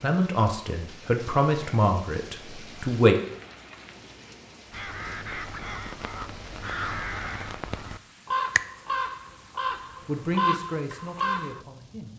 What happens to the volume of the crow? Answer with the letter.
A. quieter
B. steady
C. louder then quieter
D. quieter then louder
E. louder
E.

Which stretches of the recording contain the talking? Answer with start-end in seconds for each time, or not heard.
0.0-3.1, 10.1-12.1.